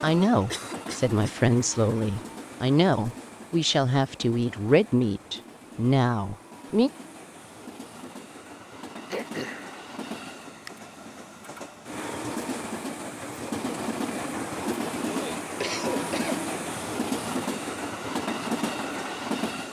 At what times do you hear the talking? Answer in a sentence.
You can hear the talking from 0.0 to 6.9 s.